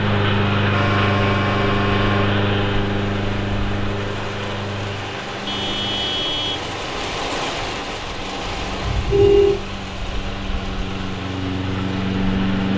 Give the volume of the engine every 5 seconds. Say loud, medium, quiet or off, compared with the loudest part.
loud, quiet, loud.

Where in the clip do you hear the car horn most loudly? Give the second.
9 s.